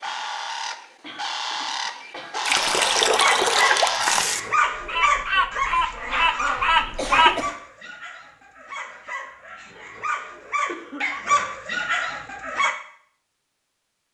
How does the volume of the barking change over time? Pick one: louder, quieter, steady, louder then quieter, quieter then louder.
quieter then louder.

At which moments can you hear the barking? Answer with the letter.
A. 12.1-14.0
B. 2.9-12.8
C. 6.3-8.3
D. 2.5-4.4
B.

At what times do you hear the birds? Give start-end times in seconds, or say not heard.
0.0-7.4.